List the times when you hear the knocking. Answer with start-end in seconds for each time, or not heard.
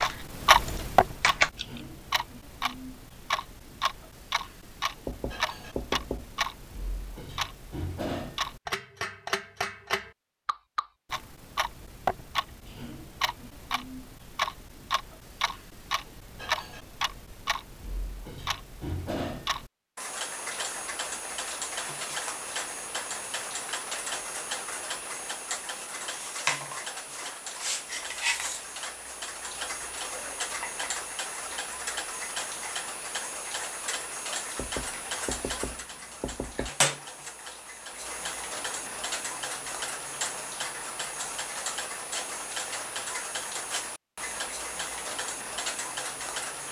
5.0-6.5, 34.5-36.7.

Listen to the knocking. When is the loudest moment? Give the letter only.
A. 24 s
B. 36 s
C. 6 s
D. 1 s
C.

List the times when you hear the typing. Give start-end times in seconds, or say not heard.
0.0-1.8.